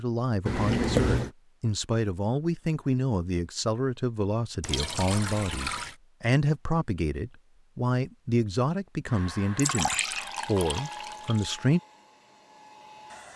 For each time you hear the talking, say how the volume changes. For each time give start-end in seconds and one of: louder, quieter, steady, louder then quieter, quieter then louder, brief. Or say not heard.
0.0-11.8 steady.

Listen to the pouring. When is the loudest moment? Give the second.
1 s.